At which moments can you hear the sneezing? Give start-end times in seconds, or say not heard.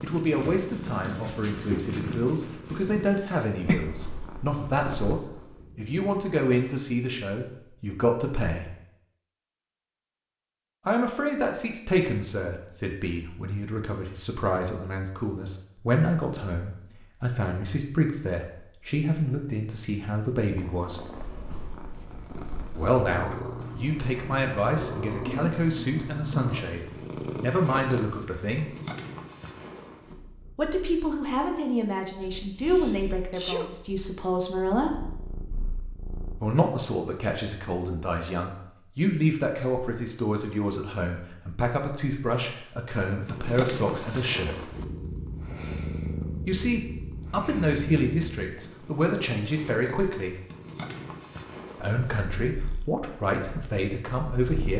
32.2-33.7.